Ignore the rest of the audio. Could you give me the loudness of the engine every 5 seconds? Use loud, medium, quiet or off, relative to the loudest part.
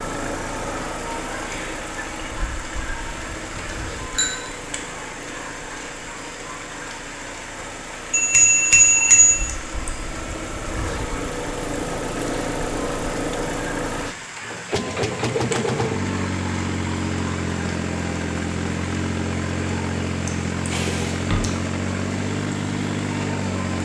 medium, quiet, loud, loud, loud.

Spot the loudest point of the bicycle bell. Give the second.
9 s.